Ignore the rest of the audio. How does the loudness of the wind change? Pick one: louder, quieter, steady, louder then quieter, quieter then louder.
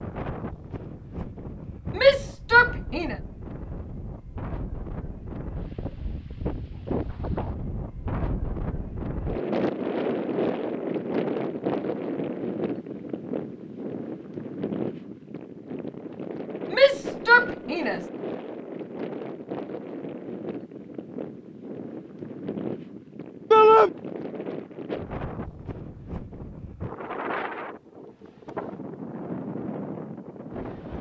louder then quieter.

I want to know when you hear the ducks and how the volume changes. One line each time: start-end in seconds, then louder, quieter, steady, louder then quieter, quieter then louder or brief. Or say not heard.
not heard.